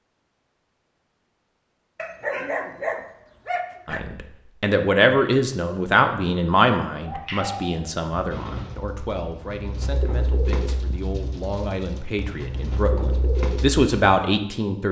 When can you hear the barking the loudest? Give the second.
2 s.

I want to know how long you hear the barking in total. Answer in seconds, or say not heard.
2 s.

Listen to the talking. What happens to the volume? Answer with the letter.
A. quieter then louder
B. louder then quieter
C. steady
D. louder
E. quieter
A.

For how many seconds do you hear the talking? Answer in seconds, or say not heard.
11 s.